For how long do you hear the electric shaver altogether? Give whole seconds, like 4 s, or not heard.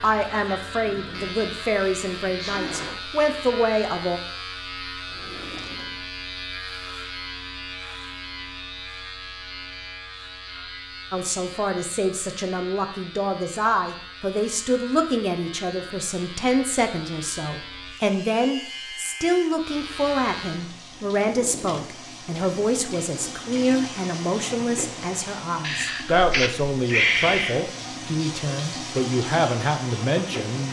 21 s.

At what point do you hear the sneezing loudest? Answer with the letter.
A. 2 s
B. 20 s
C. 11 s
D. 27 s
D.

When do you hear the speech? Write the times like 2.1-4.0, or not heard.
0.0-4.2, 11.1-30.6.